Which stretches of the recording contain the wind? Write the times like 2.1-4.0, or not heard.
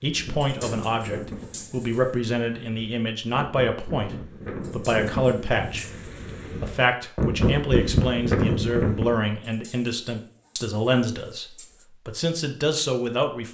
0.0-9.2.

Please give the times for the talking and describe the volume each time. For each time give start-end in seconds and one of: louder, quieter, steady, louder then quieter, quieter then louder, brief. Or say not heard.
0.0-13.4 steady.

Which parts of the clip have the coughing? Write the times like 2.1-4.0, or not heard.
not heard.